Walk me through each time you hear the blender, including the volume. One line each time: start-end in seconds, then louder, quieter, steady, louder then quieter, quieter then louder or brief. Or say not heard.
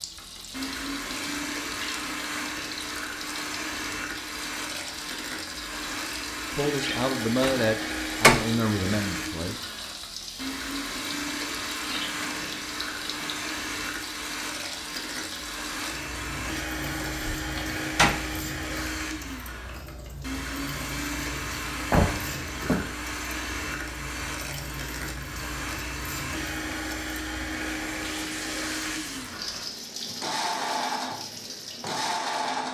0.0-32.6 steady.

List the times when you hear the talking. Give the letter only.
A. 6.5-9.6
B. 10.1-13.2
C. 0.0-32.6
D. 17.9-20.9
A.